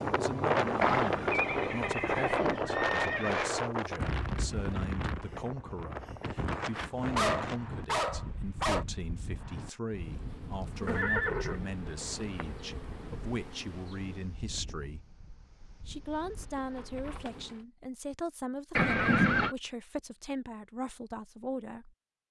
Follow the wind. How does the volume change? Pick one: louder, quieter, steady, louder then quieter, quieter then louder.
quieter.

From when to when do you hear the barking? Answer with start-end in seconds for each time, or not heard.
7.2-8.8.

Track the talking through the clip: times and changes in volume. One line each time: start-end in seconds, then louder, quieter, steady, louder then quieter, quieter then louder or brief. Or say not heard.
0.0-15.1 steady
15.8-21.9 steady.